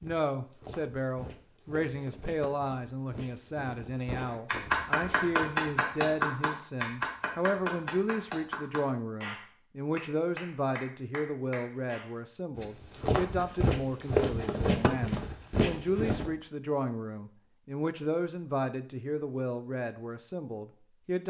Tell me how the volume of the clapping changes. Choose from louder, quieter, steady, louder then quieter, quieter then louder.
quieter.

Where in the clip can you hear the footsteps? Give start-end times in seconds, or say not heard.
0.0-5.5, 12.6-16.3.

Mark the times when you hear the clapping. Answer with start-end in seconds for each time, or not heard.
4.2-12.1.